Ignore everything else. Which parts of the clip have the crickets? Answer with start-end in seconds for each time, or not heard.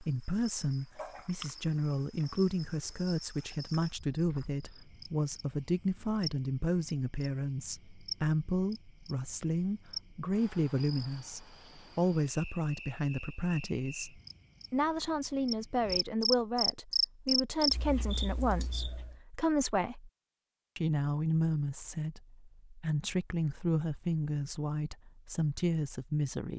0.0-19.1.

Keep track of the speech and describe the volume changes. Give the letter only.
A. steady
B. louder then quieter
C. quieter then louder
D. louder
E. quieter
A.